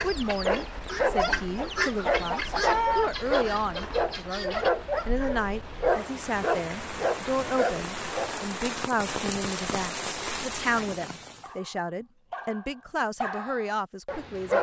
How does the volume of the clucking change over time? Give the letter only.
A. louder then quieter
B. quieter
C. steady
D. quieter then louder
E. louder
A.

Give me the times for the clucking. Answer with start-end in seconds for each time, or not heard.
0.0-4.7.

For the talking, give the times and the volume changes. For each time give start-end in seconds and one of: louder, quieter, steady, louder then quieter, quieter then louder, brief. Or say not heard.
0.0-14.5 steady.